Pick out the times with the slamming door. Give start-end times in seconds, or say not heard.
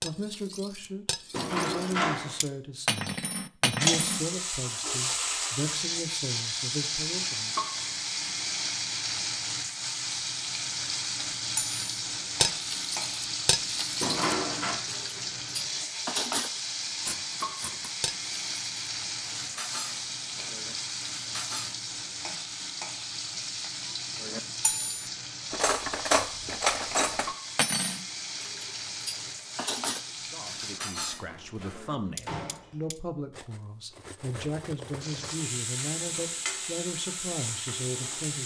1.3-2.4, 14.0-14.8, 31.2-32.8.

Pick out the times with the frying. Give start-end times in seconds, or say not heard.
3.8-30.8, 35.0-38.4.